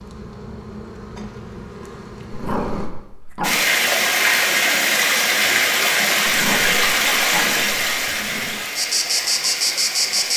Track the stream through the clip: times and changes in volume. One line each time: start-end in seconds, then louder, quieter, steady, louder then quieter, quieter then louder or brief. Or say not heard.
3.4-10.3 quieter.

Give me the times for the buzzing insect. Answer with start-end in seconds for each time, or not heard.
0.0-2.9, 8.8-10.3.